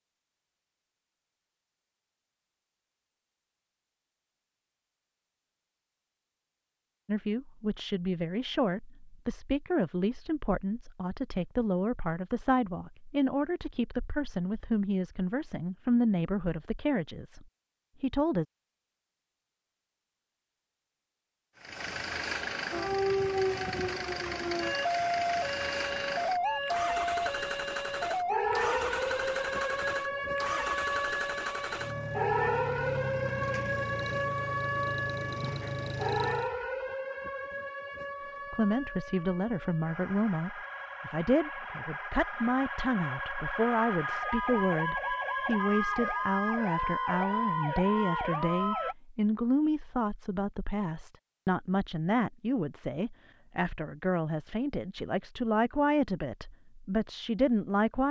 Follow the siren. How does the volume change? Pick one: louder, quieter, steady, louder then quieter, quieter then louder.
quieter then louder.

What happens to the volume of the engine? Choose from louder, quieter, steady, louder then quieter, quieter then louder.
steady.